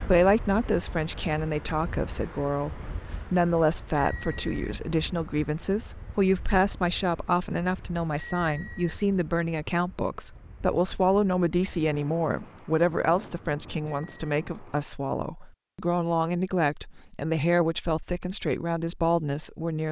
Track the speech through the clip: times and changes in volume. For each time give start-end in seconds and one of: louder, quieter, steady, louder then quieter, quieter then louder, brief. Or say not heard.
0.0-19.8 steady.